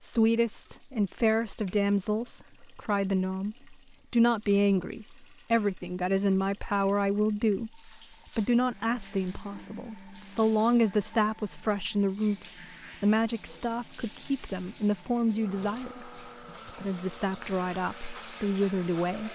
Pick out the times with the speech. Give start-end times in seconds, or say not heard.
0.0-19.3.